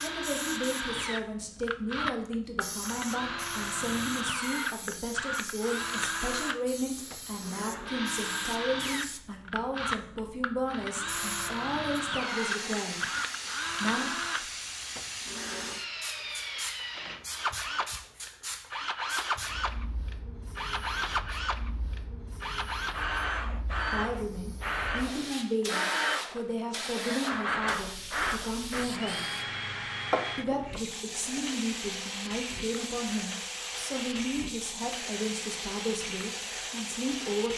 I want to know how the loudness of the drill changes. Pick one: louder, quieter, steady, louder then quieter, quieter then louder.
quieter.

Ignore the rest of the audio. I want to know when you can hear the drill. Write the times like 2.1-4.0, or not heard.
0.0-37.5.